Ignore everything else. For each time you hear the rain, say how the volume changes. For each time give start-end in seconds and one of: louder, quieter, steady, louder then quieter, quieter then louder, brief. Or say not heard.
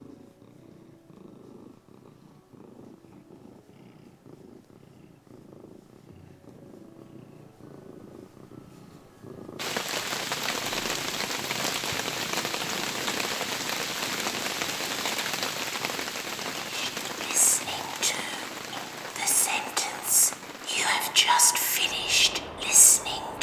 9.6-23.3 quieter.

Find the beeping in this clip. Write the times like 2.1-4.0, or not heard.
not heard.